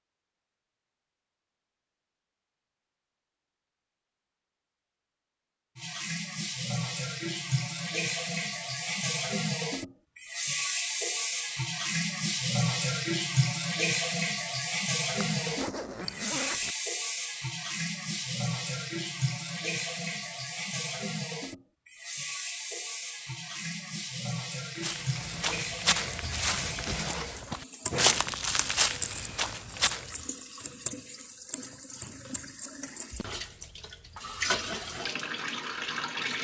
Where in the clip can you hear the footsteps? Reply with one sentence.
The footsteps can be heard from 24.8 to 30.1 s.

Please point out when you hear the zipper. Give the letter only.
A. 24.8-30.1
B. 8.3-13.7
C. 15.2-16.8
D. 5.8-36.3
C.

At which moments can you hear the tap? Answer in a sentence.
The tap can be heard from 5.8 to 36.3 s.